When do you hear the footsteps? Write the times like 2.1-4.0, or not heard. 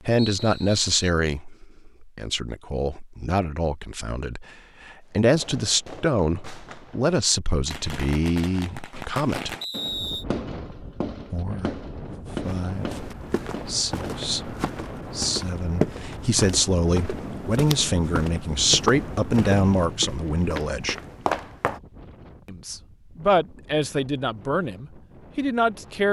12.4-21.8.